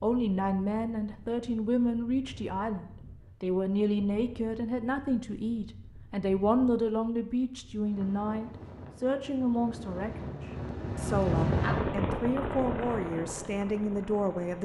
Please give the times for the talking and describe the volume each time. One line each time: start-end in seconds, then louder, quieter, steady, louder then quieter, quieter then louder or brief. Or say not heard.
0.0-14.6 steady.